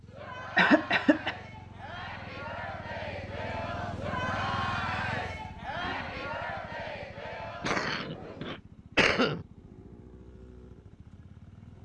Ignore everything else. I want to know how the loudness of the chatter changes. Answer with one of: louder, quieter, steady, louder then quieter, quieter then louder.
louder then quieter.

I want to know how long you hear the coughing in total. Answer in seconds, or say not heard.
3 s.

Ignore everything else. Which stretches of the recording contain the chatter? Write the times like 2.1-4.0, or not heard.
0.0-8.6.